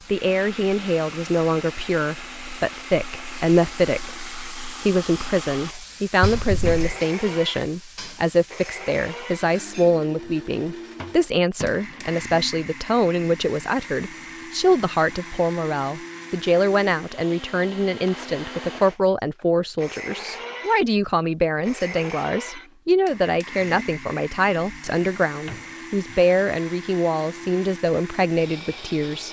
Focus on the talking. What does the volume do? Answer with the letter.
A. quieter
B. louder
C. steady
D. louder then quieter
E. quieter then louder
C.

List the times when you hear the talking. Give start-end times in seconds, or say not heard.
0.1-29.2.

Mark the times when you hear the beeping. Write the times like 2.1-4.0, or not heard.
not heard.